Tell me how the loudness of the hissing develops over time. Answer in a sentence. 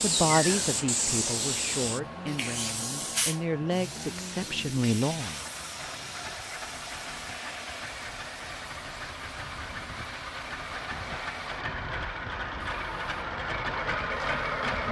The volume of the hissing goes down.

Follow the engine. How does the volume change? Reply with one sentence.
The loudness of the engine goes up.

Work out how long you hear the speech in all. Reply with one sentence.
You can hear the speech for 5 seconds altogether.